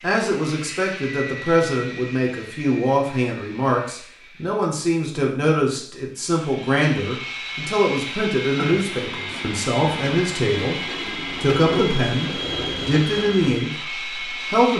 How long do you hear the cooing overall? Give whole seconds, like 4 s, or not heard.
5 s.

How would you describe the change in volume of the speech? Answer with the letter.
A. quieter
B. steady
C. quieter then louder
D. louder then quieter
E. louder
B.